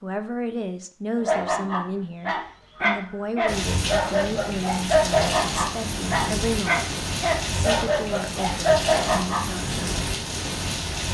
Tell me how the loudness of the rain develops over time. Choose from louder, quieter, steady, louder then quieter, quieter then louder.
steady.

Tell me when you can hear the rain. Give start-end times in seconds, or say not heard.
3.5-11.0.